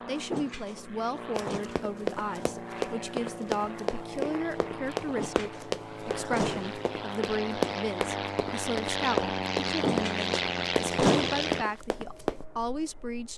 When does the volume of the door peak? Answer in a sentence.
The loudest moment of the door is at 11 seconds.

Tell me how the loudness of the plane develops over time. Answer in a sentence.
The loudness of the plane goes up.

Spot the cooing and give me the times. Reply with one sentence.
The cooing can't be heard in this clip.